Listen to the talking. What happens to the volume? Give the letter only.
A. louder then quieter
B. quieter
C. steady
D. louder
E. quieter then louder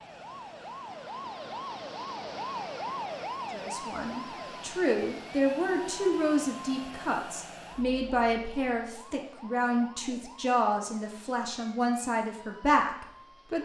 C.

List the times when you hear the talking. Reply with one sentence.
You can hear the talking from 3.5 to 13.6 s.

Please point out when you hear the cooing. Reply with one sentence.
You can't hear the cooing here.